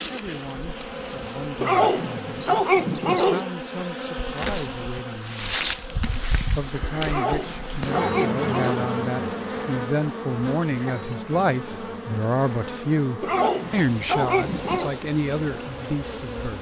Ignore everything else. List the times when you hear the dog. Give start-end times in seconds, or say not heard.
1.6-3.5, 7.0-8.8, 13.2-14.9.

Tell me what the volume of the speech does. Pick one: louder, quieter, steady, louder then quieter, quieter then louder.
louder.